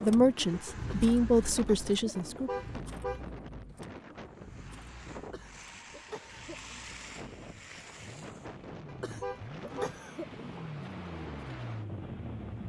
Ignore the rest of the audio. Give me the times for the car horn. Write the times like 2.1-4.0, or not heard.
2.1-3.2, 8.8-10.0.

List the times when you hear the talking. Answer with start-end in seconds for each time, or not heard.
0.0-2.5.